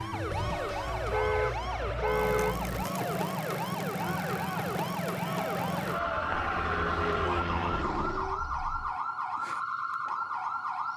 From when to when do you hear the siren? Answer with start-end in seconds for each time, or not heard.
0.0-10.9.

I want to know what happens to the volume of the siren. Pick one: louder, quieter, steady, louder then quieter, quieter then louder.
steady.